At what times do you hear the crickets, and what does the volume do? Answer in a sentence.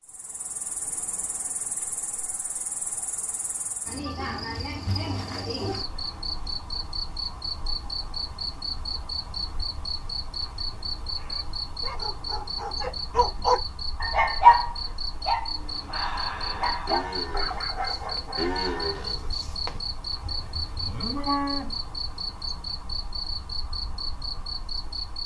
You can hear the crickets from 0.0 to 25.2 s, at a steady volume.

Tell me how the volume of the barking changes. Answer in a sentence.
The volume of the barking goes up, then down.